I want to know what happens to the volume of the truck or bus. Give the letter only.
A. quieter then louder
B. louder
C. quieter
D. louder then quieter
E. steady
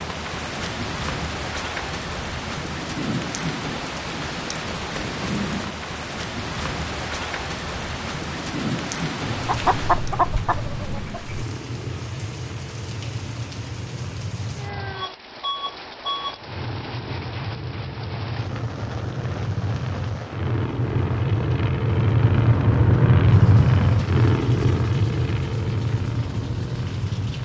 B.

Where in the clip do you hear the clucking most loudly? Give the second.
10 s.